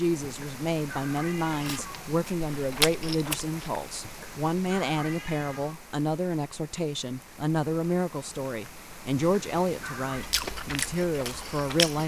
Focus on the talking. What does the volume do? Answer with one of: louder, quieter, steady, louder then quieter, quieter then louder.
steady.